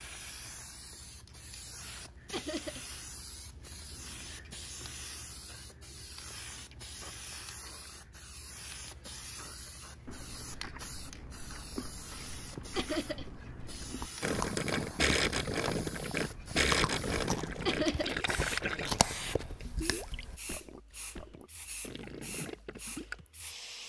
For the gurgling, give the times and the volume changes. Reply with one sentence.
The gurgling can be heard from 14.2 to 23.1 s, getting quieter.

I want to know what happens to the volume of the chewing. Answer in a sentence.
The volume of the chewing goes up.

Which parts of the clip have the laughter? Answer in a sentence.
The laughter can be heard from 2.3 to 2.9 s, from 12.8 to 13.2 s and from 17.6 to 18.1 s.